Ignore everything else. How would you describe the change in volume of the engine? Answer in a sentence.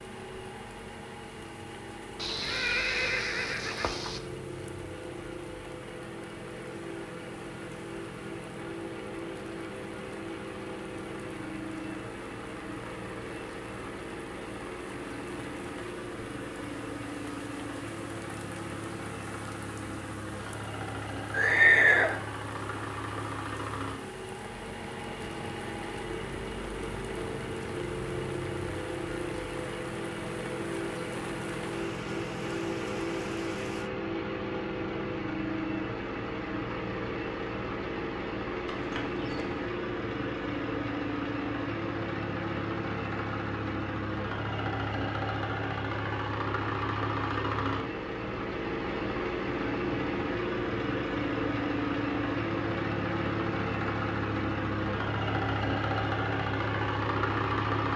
The loudness of the engine goes up.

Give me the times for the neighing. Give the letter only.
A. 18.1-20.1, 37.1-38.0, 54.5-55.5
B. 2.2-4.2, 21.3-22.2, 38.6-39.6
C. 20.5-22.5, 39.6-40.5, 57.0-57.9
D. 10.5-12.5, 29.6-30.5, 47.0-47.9
B.